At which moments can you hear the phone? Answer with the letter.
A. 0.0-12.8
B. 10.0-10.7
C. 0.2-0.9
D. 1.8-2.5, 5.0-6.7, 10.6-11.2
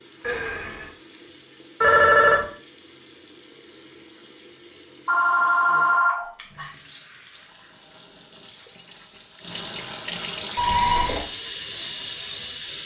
D.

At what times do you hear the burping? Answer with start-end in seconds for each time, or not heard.
0.2-0.9.